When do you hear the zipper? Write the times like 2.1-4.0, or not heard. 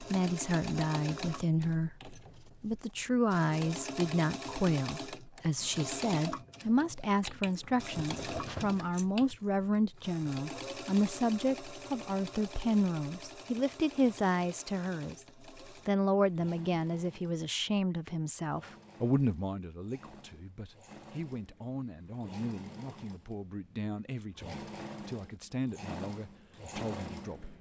8.0-8.8.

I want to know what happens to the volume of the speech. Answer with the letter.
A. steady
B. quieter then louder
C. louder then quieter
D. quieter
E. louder
D.